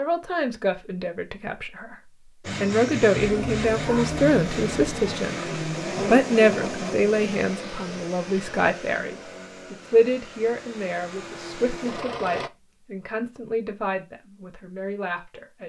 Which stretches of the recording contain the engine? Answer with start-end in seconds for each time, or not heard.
2.4-12.5.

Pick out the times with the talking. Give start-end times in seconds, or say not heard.
0.0-15.6.